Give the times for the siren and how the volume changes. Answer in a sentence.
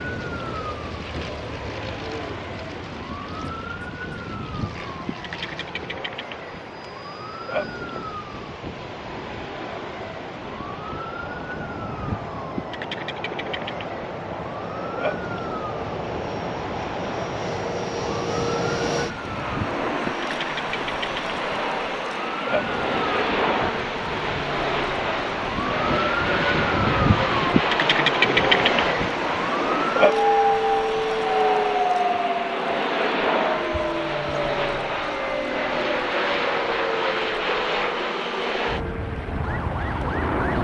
The siren can be heard from 0.0 to 40.5 s, getting louder then quieter.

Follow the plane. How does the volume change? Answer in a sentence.
The volume of the plane goes up.